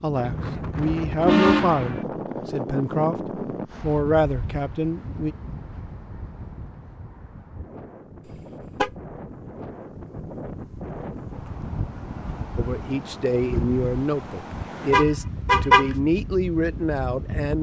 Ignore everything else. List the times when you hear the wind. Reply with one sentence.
You can hear the wind from 0.0 to 17.5 s.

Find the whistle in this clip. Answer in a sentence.
You can't hear the whistle here.